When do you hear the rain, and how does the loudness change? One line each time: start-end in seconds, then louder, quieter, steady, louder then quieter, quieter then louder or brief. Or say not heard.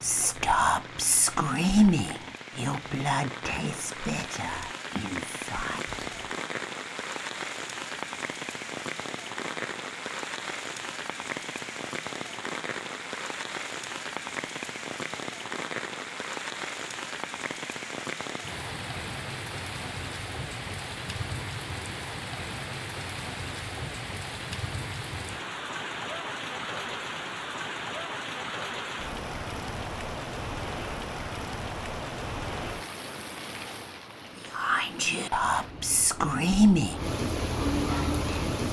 0.0-38.6 steady.